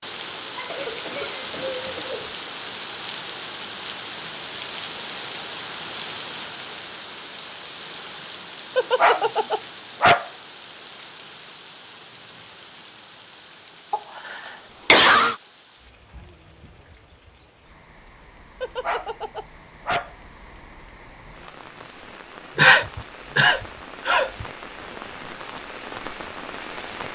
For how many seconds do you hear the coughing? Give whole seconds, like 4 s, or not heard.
5 s.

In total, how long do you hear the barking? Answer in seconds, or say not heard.
3 s.